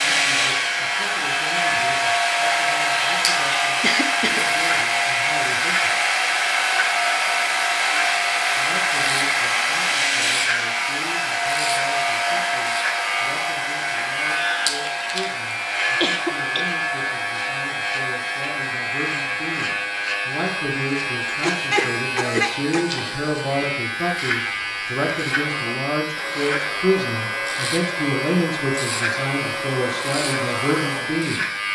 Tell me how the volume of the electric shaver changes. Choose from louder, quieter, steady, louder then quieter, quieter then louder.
steady.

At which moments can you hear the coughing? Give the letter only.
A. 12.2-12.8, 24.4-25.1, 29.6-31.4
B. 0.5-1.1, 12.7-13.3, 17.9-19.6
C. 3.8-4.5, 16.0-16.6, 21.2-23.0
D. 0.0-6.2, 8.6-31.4
C.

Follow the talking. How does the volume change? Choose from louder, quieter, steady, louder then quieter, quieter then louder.
louder.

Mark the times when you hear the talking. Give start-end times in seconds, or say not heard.
0.0-6.2, 8.6-31.4.